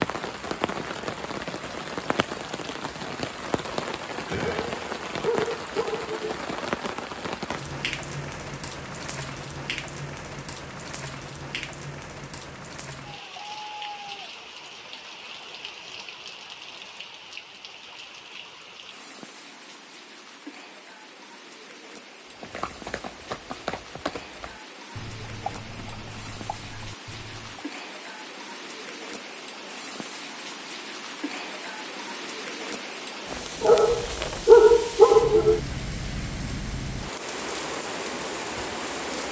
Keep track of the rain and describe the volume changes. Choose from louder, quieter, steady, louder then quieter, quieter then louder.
quieter then louder.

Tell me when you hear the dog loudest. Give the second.
35 s.